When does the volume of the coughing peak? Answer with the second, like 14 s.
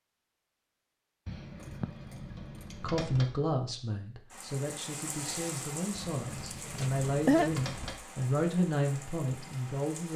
7 s.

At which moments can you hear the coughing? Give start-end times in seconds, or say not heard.
1.2-1.9, 6.3-7.5.